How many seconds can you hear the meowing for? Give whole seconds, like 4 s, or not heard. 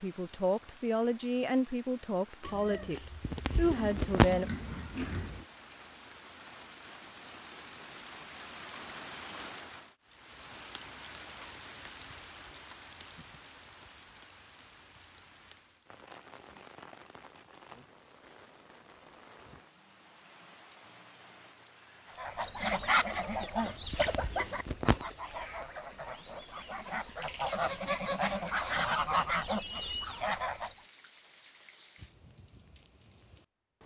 4 s.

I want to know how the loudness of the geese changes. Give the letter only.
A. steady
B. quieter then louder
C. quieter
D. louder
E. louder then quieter
B.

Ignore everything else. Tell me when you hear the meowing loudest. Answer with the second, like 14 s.
4 s.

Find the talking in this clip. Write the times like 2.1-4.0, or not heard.
0.0-4.5.